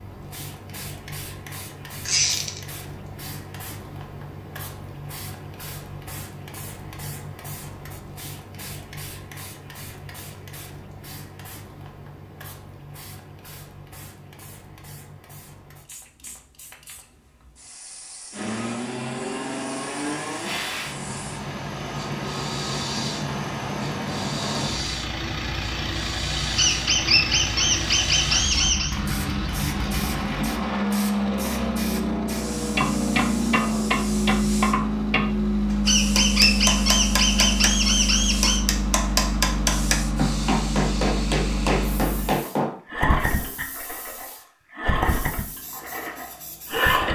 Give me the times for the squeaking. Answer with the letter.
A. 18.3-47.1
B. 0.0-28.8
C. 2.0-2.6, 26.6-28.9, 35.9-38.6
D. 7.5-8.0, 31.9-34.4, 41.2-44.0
C.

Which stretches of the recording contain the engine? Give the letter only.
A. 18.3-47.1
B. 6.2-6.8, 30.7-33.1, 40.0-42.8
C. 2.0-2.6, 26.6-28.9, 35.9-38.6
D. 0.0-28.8
A.